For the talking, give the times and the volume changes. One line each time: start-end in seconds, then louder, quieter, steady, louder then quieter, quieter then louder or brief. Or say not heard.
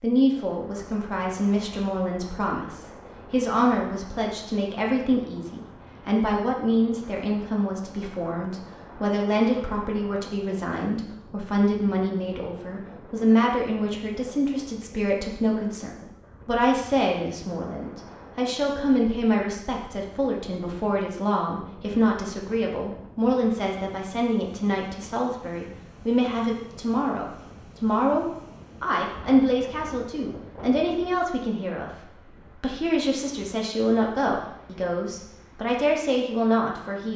0.0-37.1 steady.